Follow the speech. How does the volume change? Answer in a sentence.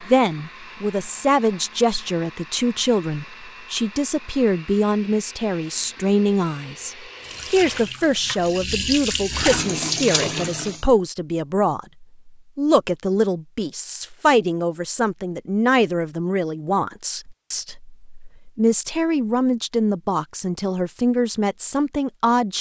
The loudness of the speech stays about the same.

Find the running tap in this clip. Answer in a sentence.
The running tap can be heard from 7.2 to 10.8 s.